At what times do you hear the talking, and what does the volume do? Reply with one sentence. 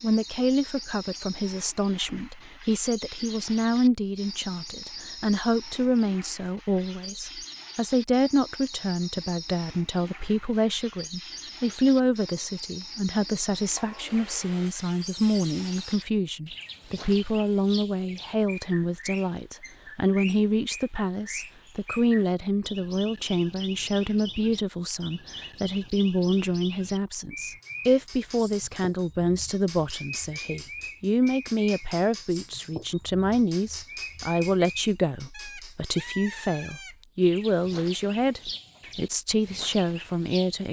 The talking can be heard from 0.0 to 40.6 s, at a steady volume.